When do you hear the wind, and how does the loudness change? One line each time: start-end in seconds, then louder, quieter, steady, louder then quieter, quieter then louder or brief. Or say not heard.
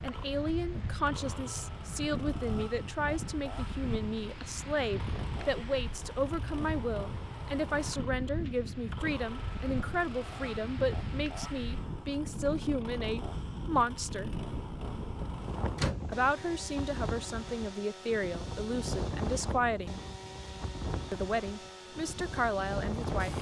0.0-23.3 steady.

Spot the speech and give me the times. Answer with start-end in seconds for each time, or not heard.
0.0-14.3, 16.1-20.0, 21.1-23.3.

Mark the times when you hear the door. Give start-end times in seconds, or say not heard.
15.2-16.1.